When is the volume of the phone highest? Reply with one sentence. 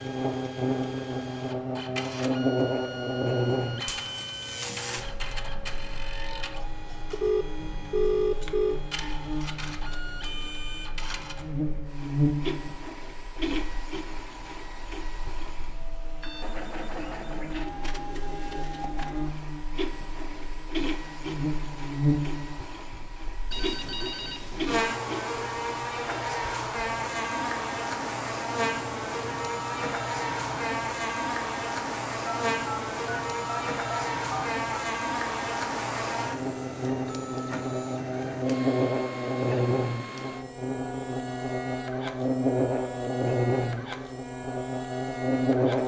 The loudest moment of the phone is at 8 seconds.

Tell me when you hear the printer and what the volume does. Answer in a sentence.
The printer can be heard from 0.0 to 45.8 s, at a steady volume.